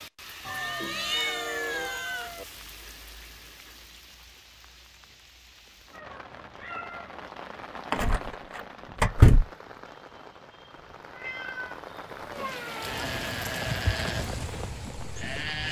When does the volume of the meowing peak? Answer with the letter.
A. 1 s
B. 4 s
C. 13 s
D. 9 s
A.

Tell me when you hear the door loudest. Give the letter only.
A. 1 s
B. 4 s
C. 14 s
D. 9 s
D.